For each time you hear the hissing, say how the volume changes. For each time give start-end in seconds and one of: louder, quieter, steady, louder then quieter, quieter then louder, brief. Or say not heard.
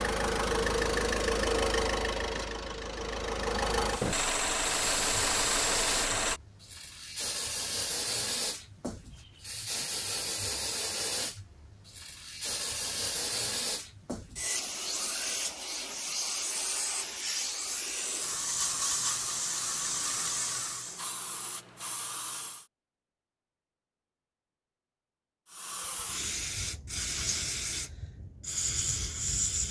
4.7-22.6 steady
25.4-29.6 quieter then louder.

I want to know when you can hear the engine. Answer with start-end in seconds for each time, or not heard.
0.0-6.4.